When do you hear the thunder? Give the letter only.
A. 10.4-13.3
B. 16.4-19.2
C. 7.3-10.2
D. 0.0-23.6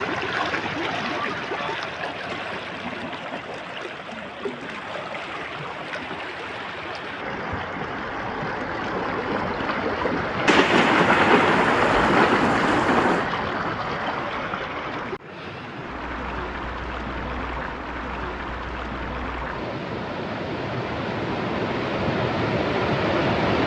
A.